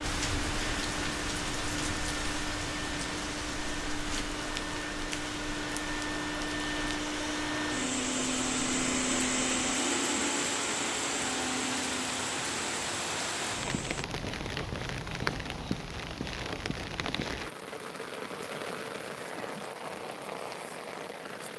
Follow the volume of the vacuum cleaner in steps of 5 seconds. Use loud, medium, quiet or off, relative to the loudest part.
medium, loud, loud, off, off.